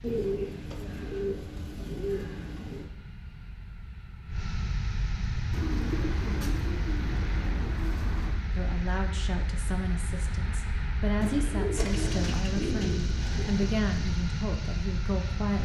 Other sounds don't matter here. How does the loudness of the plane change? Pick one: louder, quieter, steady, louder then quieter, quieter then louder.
louder.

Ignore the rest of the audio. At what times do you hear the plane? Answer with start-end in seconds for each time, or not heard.
0.0-15.6.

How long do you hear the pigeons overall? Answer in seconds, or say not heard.
8 s.